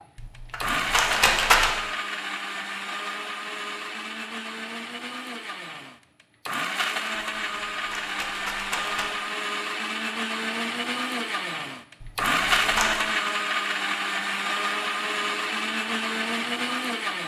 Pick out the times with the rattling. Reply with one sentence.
The rattling can be heard from 0.1 to 1.7 s, from 7.2 to 9.1 s and from 12.0 to 13.0 s.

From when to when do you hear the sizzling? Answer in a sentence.
The sizzling can't be heard in this clip.